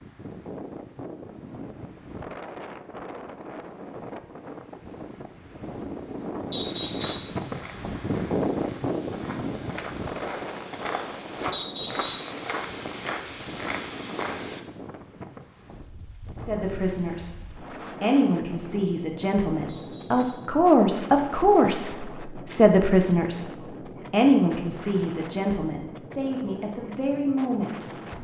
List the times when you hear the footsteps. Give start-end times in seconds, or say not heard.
6.6-14.7.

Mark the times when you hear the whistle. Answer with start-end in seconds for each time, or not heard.
6.5-7.3, 11.5-12.3, 19.6-20.5.